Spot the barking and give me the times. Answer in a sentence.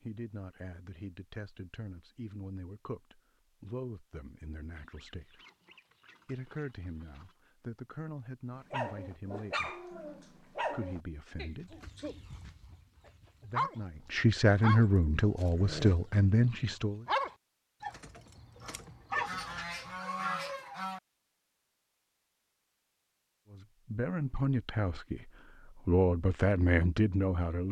The barking can be heard from 8.7 to 13.8 s and from 14.6 to 19.9 s.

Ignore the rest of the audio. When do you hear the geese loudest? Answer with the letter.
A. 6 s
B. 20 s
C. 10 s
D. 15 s
B.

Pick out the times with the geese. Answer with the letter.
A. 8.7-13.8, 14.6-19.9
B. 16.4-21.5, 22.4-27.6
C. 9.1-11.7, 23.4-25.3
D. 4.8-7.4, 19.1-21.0
D.